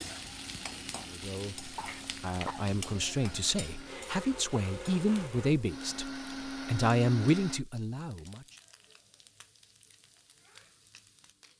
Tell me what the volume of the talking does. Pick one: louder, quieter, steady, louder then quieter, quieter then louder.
louder.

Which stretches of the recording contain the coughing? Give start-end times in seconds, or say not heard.
1.8-2.6.